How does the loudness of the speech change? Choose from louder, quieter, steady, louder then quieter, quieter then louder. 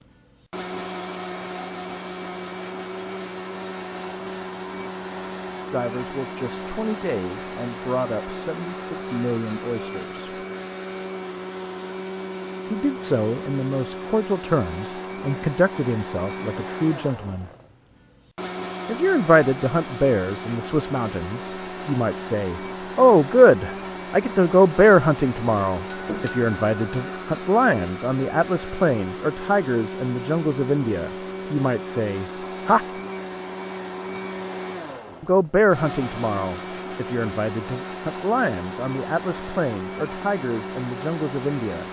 louder then quieter.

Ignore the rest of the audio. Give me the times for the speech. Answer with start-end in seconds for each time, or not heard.
5.7-10.2, 12.7-17.5, 18.9-32.9, 35.2-41.8.